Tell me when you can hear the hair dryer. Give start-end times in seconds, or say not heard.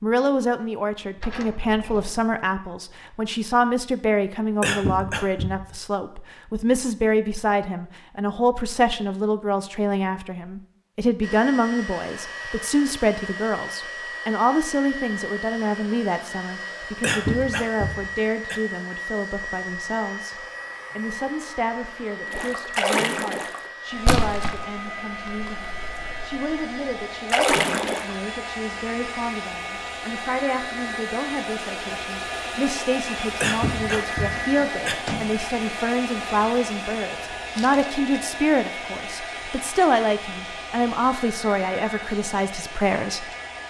11.2-43.6.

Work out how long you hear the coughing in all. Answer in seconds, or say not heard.
4 s.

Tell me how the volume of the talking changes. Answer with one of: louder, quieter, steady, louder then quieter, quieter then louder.
quieter then louder.